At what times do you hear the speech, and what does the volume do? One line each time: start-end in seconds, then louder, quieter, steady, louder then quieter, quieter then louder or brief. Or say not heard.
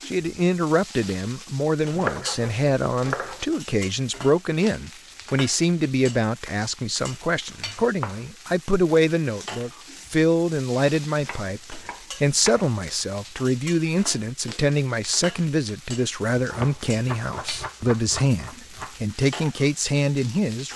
0.1-20.7 steady.